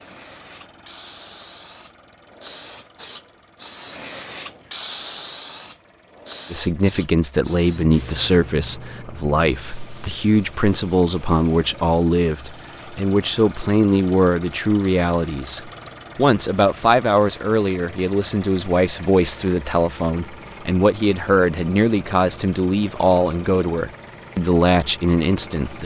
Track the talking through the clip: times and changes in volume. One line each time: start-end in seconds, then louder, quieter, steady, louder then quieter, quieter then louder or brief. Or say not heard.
6.5-25.8 steady.